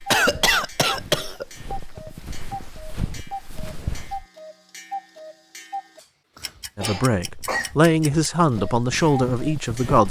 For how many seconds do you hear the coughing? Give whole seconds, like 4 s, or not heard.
2 s.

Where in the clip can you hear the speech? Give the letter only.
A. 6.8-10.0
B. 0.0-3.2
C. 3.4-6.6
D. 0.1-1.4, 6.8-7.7
A.